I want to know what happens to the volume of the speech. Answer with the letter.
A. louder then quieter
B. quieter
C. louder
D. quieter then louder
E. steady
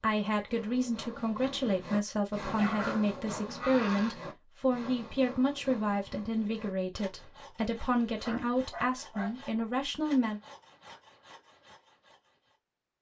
E.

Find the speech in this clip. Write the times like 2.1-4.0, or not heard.
0.0-10.4.